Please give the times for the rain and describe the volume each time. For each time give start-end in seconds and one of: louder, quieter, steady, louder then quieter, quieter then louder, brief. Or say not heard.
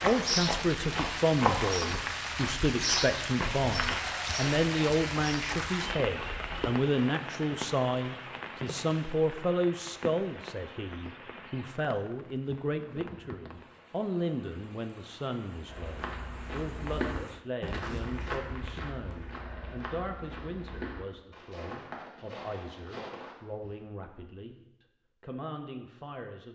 0.0-17.4 quieter.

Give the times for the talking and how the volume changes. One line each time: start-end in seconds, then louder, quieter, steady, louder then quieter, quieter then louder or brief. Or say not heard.
0.0-26.5 quieter.